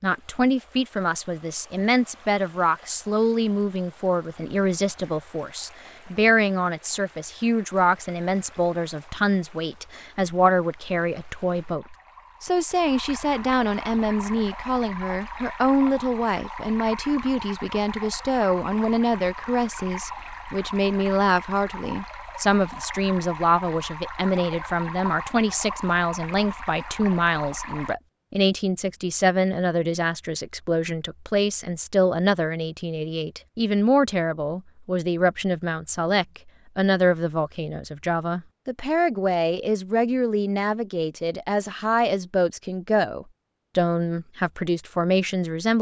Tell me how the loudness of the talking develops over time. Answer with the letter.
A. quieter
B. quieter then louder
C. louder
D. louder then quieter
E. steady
E.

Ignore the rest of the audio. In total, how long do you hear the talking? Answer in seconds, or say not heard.
46 s.